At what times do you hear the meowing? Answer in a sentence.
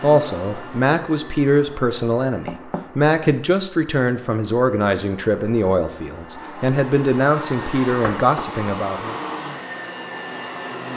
The meowing can't be heard in this clip.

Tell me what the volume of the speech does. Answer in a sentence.
The loudness of the speech stays about the same.